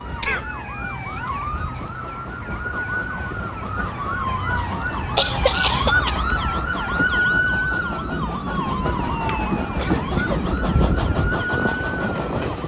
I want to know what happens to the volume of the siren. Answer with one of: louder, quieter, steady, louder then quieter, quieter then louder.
louder then quieter.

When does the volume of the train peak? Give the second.
10 s.